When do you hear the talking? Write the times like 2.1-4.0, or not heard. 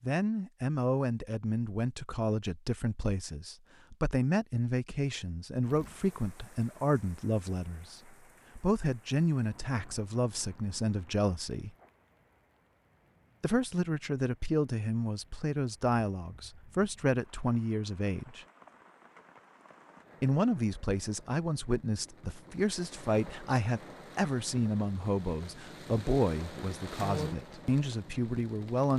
0.0-11.7, 13.4-18.4, 20.2-28.9.